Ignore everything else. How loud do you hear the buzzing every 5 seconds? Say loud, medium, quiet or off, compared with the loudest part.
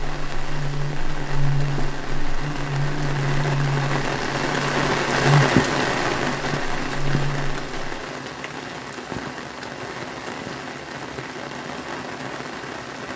loud, loud, off.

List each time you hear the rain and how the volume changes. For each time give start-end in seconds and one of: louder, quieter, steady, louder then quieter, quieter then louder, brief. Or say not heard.
0.0-13.1 louder then quieter.